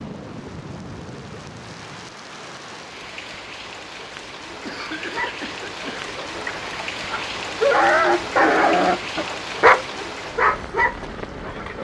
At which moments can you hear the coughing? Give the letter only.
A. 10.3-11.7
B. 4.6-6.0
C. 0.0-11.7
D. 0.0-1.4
B.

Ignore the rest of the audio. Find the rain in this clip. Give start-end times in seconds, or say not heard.
0.0-11.7.